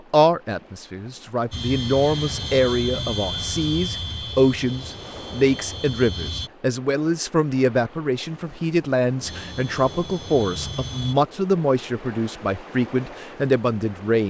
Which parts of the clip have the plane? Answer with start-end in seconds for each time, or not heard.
1.5-6.5, 9.2-11.2.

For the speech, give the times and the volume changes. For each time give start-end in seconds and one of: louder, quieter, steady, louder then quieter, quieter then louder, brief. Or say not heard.
0.1-14.2 steady.